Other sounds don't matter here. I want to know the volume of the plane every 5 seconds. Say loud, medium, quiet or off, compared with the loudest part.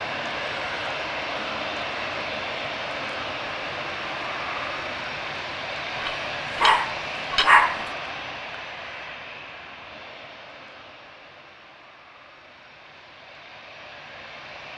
loud, loud, quiet.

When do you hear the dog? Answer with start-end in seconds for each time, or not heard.
6.0-7.8.